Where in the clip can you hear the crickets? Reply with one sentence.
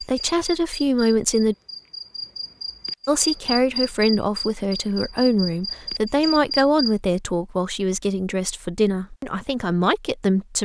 The crickets can be heard from 0.0 to 7.0 s.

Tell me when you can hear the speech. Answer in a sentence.
The speech can be heard from 0.0 to 1.6 s and from 3.0 to 10.6 s.